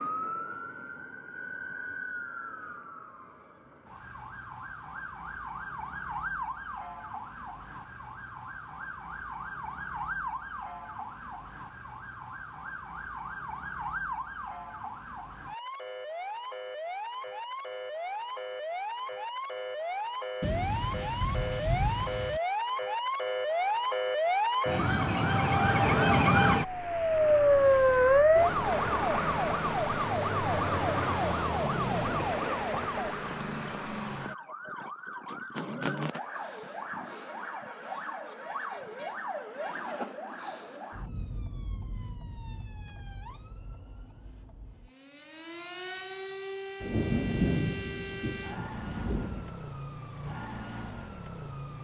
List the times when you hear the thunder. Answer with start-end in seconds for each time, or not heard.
20.4-22.4, 46.8-49.5.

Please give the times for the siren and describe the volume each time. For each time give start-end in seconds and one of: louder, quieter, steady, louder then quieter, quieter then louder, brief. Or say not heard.
0.0-51.7 louder then quieter.